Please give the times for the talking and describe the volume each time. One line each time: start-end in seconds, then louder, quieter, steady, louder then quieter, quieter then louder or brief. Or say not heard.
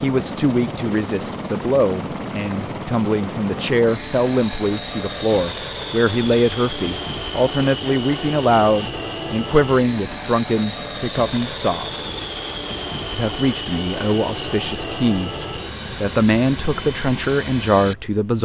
0.0-12.2 steady
13.1-15.3 brief
16.0-18.4 brief.